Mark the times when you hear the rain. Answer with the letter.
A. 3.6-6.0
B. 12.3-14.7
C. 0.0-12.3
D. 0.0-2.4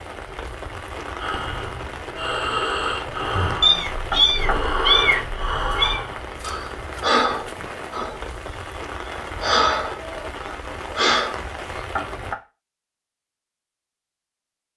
C.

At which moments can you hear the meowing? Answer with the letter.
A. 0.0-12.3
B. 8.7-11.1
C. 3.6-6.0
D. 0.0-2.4
C.